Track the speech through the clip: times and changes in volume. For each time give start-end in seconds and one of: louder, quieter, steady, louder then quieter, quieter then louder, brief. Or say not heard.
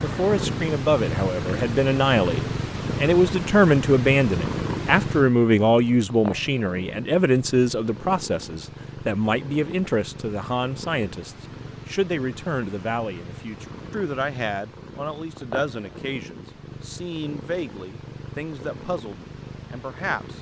0.0-20.3 quieter.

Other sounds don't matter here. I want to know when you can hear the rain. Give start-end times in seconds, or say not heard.
not heard.